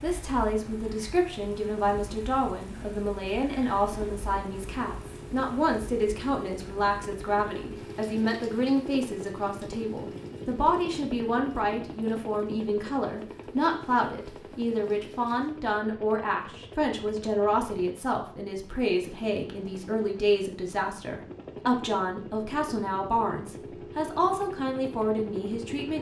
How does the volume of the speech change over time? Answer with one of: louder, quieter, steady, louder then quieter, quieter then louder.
steady.